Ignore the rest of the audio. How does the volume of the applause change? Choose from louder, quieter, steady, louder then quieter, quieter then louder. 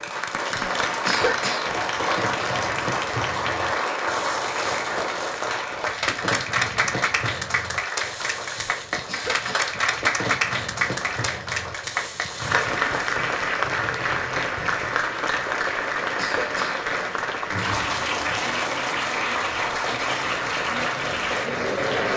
steady.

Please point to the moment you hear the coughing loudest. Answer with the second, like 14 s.
1 s.